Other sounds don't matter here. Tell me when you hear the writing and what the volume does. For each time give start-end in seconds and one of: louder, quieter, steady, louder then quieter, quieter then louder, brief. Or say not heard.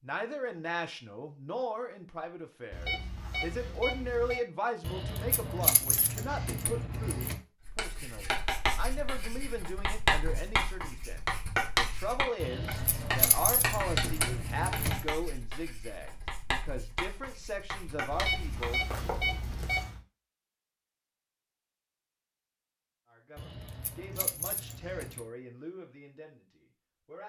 7.7-19.8 quieter.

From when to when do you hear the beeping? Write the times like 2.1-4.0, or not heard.
2.7-4.4, 18.1-20.0.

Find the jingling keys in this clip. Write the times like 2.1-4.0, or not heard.
4.8-7.4, 12.4-15.1, 23.4-25.2.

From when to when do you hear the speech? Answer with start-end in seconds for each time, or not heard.
0.0-18.8, 23.1-27.2.